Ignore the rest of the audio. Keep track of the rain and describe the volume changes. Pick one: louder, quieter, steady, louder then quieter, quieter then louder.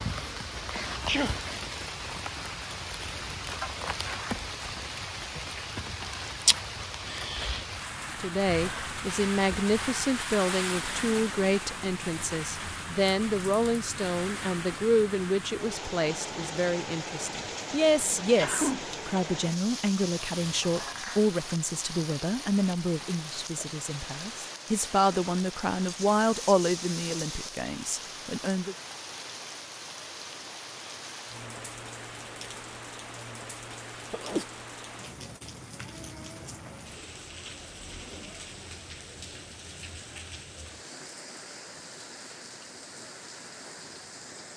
quieter.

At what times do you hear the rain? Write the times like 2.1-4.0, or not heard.
0.0-44.5.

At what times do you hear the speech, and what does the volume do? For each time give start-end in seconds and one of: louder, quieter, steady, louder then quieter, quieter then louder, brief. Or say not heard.
8.2-28.8 steady.